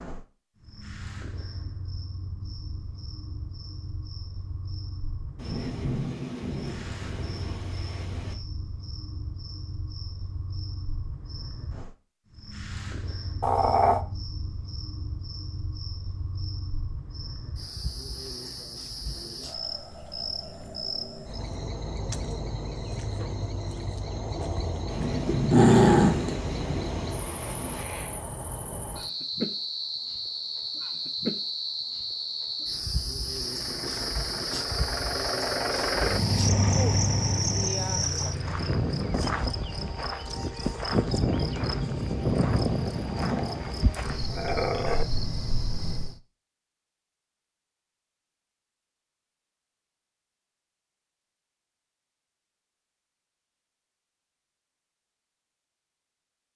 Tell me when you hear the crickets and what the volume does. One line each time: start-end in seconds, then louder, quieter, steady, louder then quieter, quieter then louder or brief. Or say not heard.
0.0-46.2 louder.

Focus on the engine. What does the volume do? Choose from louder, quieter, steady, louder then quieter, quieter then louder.
louder then quieter.